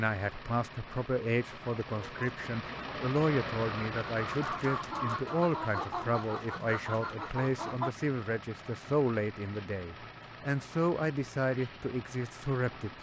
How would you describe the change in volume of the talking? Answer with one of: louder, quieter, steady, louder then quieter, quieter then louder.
steady.